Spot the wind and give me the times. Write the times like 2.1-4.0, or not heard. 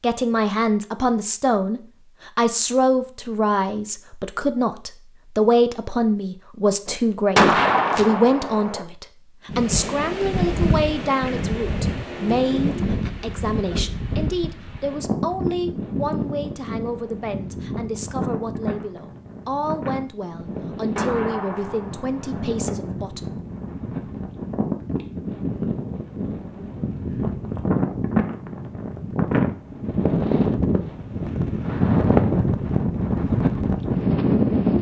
9.4-34.7.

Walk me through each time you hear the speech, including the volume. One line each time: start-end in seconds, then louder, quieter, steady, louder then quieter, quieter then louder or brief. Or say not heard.
0.0-23.4 quieter.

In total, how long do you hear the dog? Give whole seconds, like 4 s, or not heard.
not heard.